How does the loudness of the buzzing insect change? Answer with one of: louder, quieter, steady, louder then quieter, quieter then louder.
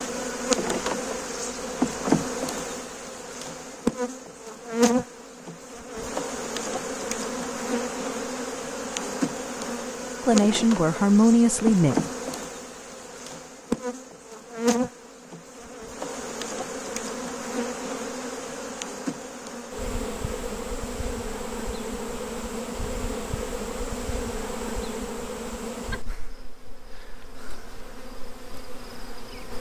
quieter.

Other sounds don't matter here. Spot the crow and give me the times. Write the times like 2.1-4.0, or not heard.
not heard.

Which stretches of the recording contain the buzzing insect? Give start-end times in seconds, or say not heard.
0.0-29.5.